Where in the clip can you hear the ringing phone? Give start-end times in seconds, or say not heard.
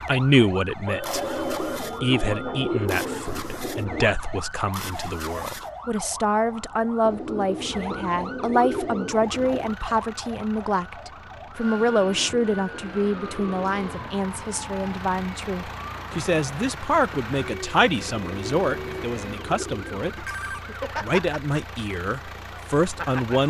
0.8-2.9, 20.1-20.8.